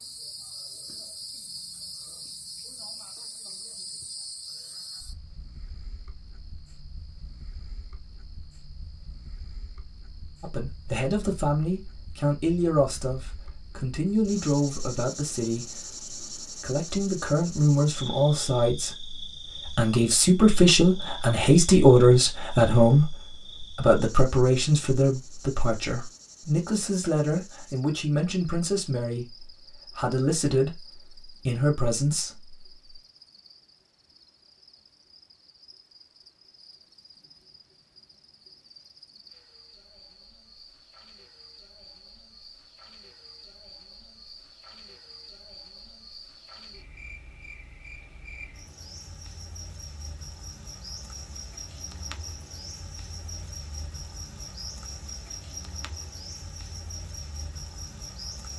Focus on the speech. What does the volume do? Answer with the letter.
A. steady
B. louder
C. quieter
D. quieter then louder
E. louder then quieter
E.